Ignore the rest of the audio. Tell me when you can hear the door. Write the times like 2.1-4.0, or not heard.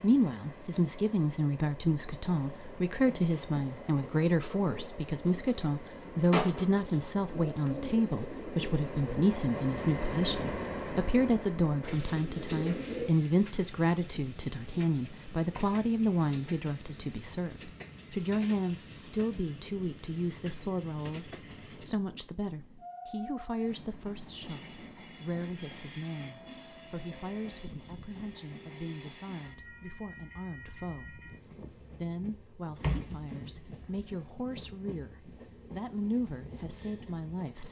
32.8-34.1.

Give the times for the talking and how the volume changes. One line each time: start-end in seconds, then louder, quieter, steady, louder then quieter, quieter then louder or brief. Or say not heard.
0.0-37.6 quieter.